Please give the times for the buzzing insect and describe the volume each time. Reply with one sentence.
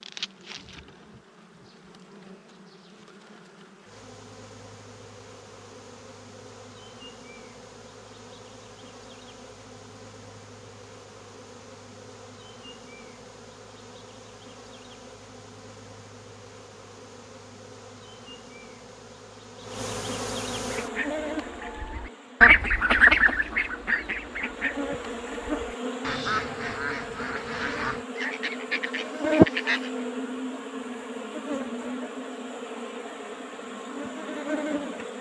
You can hear the buzzing insect from 0.0 to 35.1 s, getting louder.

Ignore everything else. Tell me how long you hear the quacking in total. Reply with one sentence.
The quacking can be heard for 9 seconds in total.